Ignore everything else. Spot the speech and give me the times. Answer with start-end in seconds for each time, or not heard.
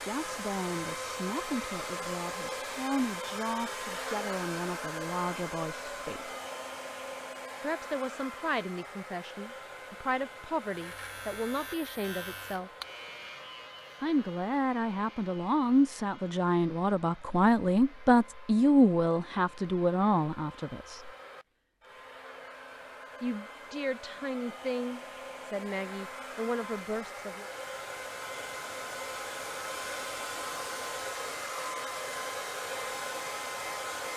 0.0-6.3, 7.6-12.7, 14.0-21.1, 23.2-27.5.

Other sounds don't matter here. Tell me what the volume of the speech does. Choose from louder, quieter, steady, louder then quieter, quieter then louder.
louder then quieter.